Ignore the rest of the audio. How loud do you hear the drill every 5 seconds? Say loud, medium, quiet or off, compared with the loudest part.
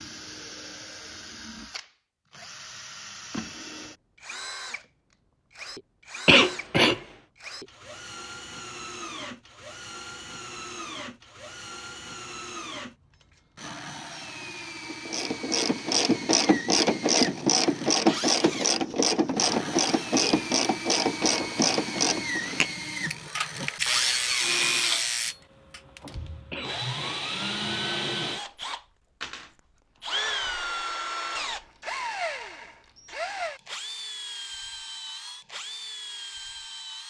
medium, medium, medium, medium, loud, loud, loud, medium.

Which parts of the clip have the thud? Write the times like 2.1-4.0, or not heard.
26.1-26.6.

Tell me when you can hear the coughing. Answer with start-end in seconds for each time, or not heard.
6.2-7.0, 26.5-27.2.